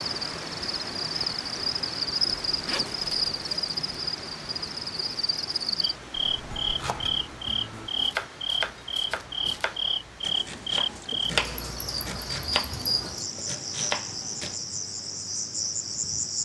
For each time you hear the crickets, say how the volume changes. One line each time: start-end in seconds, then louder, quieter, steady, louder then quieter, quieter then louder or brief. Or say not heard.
0.0-16.4 steady.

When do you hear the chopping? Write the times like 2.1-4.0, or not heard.
6.2-14.6.